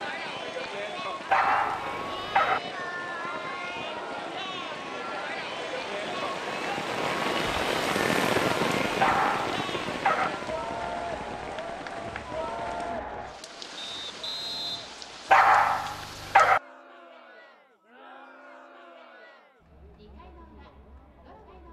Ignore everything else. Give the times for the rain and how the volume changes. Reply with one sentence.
You can hear the rain from 0.0 to 16.6 s, getting louder then quieter.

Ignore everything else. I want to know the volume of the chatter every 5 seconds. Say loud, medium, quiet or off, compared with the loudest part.
loud, loud, loud, quiet, quiet.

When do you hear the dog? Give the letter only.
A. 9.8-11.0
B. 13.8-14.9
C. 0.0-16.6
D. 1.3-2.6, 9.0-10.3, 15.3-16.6
D.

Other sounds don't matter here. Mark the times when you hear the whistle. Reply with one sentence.
You can hear the whistle from 13.8 to 14.9 s.